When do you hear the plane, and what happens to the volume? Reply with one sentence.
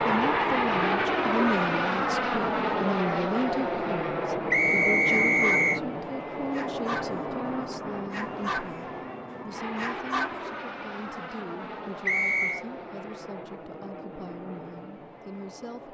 The plane can be heard from 0.0 to 15.8 s, getting quieter.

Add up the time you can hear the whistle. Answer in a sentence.
The whistle can be heard for 2 seconds in total.